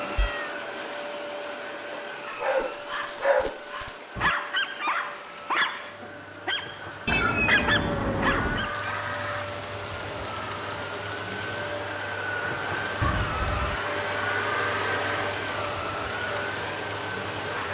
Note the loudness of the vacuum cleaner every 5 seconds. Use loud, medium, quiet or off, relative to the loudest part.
medium, medium, loud, loud.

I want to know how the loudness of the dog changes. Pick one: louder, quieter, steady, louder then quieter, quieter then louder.
quieter then louder.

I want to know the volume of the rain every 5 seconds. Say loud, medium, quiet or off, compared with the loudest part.
quiet, loud, loud, loud.